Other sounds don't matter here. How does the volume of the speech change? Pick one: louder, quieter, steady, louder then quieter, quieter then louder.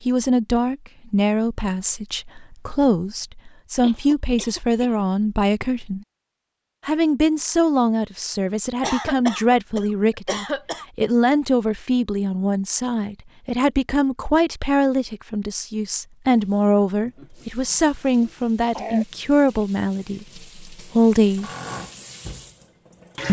steady.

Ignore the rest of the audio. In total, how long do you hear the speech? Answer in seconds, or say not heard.
21 s.